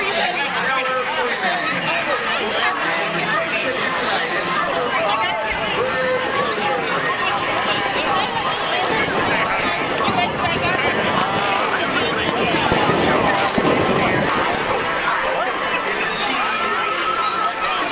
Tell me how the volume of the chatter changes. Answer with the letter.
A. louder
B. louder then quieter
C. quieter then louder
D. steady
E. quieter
D.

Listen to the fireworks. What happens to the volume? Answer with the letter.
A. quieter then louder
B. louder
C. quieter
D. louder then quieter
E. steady
B.